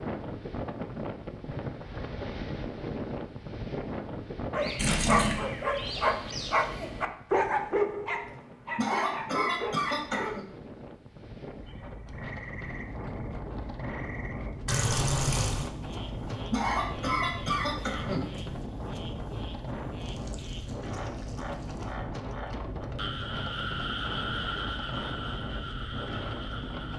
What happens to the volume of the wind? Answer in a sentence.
The loudness of the wind goes down, then up.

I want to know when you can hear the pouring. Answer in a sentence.
You can hear the pouring from 4.8 to 5.4 s, from 14.7 to 15.7 s and from 20.0 to 21.9 s.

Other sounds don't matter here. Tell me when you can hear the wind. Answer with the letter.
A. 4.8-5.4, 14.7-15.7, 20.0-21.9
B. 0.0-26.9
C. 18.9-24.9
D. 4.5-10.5
B.